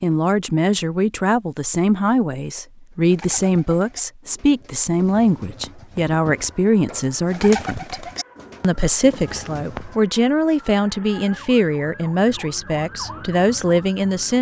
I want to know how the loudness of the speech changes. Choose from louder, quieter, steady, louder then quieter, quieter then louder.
steady.